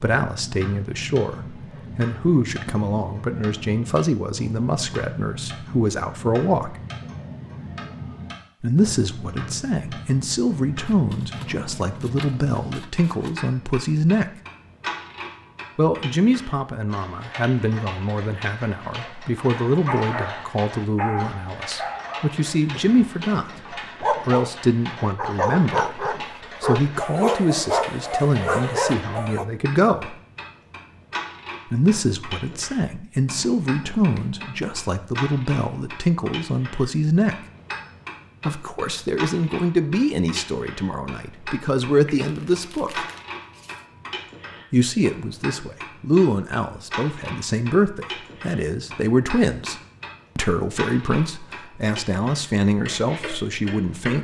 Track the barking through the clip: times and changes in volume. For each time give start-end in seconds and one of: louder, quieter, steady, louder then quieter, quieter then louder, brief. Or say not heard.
19.5-24.5 quieter then louder
25.1-29.4 steady.